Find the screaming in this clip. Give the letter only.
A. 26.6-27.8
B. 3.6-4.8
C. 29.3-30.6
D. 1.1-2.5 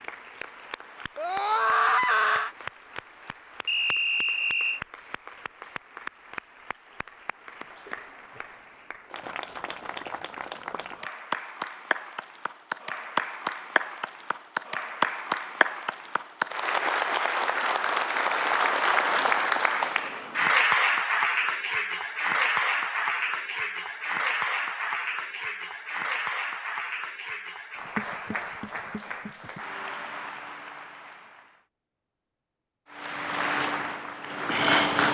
D.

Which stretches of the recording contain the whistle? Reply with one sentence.
You can hear the whistle from 3.6 to 4.8 s.